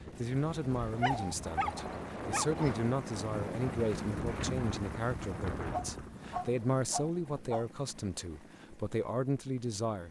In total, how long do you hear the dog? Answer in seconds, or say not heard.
4 s.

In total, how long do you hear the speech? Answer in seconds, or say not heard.
10 s.